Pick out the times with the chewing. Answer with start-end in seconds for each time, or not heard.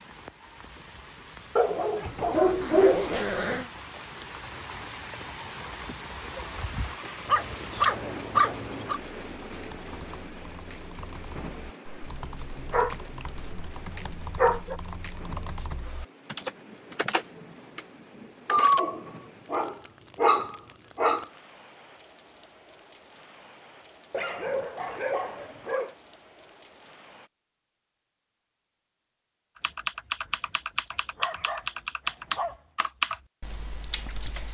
not heard.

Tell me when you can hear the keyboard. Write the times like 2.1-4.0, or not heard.
8.9-18.9, 29.6-34.4.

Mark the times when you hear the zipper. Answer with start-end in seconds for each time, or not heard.
2.0-3.7.